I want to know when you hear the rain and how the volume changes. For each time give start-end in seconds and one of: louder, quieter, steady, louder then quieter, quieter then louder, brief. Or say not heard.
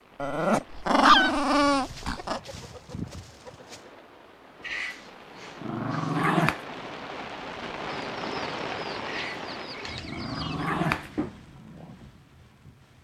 0.0-13.0 louder then quieter.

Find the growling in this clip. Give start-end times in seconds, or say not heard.
0.1-2.4, 4.7-6.6, 9.1-11.3.